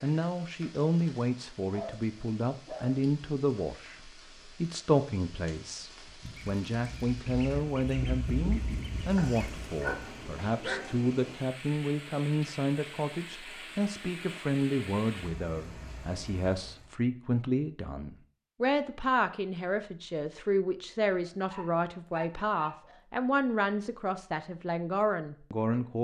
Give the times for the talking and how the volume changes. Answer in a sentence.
You can hear the talking from 0.0 to 25.9 s, at a steady volume.